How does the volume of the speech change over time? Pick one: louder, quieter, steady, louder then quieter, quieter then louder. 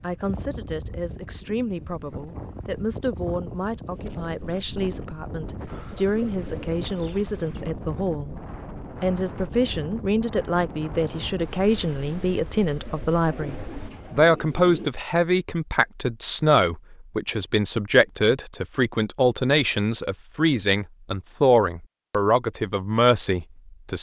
louder.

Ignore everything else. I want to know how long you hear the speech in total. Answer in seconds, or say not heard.
24 s.